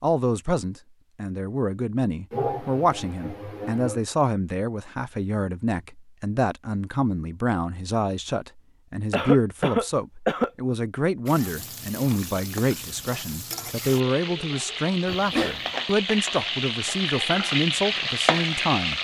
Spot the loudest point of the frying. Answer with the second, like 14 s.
18 s.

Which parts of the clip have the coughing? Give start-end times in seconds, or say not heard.
2.3-4.0, 9.1-10.5, 15.1-15.7.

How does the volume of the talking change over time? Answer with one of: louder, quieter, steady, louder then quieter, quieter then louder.
steady.